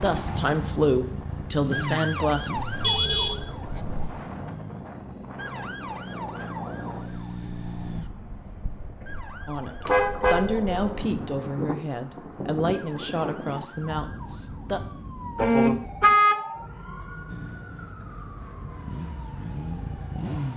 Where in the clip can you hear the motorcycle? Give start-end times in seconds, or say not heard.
0.0-8.1, 17.2-20.5.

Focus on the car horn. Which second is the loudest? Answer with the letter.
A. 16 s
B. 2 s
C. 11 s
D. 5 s
A.